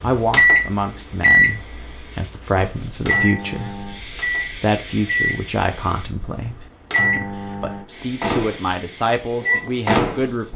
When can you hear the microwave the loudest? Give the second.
1 s.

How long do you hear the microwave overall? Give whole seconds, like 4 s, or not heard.
10 s.